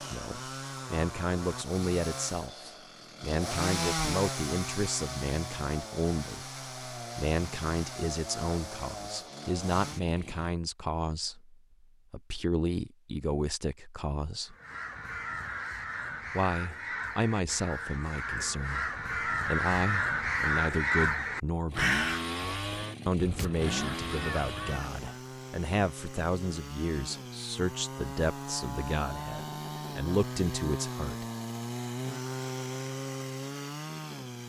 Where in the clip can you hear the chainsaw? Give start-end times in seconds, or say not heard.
0.0-10.6, 21.7-34.4.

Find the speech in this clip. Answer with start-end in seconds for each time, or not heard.
0.1-14.6, 16.3-21.9, 23.1-31.2.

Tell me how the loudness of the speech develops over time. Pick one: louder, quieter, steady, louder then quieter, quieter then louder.
steady.